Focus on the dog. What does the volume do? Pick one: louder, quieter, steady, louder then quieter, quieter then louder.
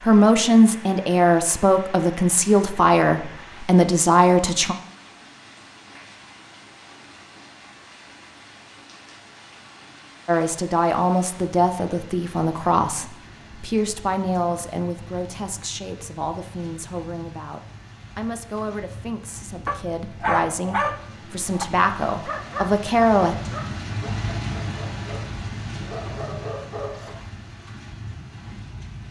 quieter then louder.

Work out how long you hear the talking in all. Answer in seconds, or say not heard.
18 s.